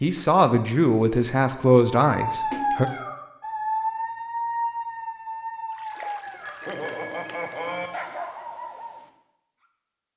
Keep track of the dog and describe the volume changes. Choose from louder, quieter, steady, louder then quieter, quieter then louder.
quieter then louder.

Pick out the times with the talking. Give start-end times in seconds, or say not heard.
0.0-2.9.